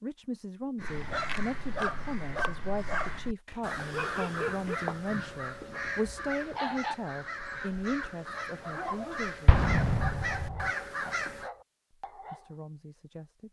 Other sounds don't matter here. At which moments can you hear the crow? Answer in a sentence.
The crow can be heard from 0.8 to 11.5 s.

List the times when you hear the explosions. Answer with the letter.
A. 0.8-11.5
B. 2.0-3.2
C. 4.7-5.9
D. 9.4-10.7
D.